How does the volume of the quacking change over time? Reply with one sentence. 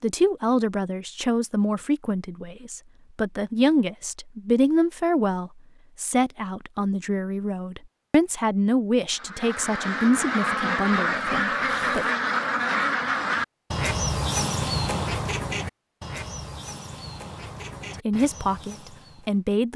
The volume of the quacking goes down.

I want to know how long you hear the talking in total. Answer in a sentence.
The talking can be heard for 14 seconds in total.